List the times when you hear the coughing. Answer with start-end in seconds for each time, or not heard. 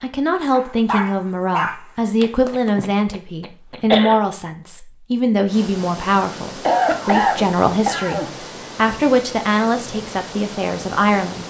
2.2-4.2, 6.7-8.3.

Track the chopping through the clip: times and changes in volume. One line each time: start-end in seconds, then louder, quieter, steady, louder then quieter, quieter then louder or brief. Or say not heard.
not heard.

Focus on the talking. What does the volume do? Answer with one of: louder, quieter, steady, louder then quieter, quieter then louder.
steady.